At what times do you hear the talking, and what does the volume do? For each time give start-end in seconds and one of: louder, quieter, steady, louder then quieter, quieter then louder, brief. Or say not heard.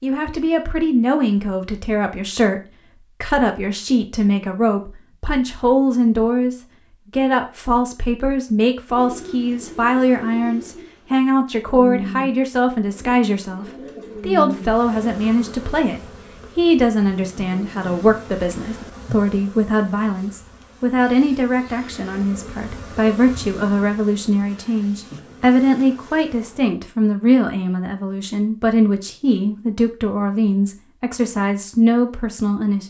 0.0-32.8 steady.